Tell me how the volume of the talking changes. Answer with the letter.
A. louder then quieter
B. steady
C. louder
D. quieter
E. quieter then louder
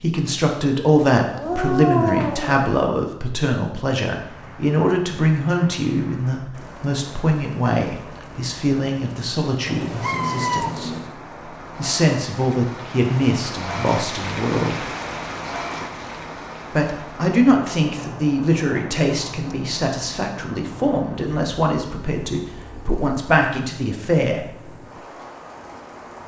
B.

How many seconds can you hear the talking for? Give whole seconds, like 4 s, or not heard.
22 s.